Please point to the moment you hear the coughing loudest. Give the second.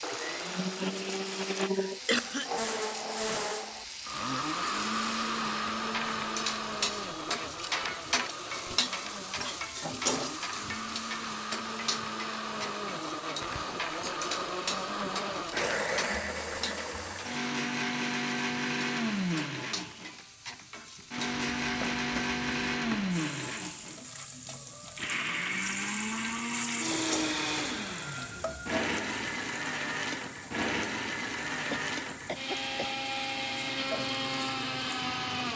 2 s.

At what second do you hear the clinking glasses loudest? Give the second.
10 s.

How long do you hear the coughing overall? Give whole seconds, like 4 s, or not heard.
3 s.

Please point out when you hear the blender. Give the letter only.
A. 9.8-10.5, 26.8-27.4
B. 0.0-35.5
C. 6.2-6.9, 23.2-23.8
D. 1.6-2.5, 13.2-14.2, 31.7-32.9
B.